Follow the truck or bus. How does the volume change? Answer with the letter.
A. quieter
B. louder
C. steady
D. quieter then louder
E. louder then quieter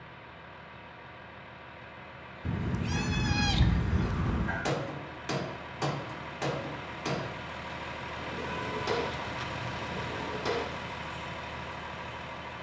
B.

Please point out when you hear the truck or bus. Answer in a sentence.
The truck or bus can be heard from 0.0 to 12.5 s.